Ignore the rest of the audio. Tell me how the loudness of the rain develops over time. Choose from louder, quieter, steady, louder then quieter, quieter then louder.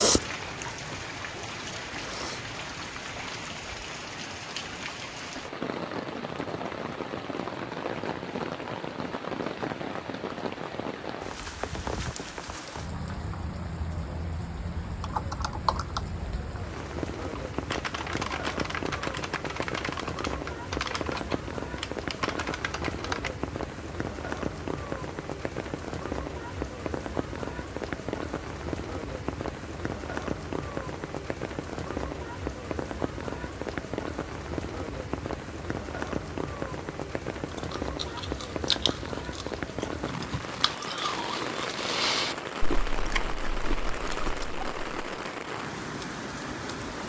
steady.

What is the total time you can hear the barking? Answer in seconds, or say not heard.
not heard.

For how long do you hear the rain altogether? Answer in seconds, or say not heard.
47 s.